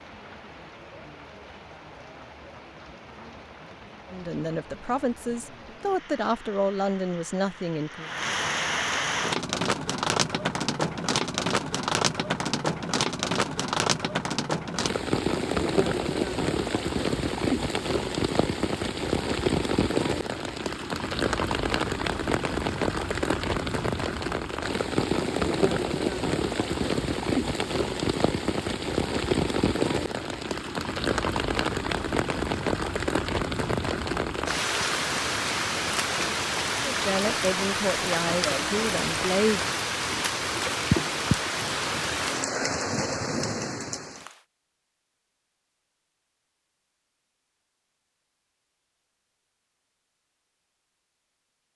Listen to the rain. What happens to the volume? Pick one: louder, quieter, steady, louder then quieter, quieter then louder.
louder.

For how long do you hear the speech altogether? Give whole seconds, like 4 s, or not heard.
7 s.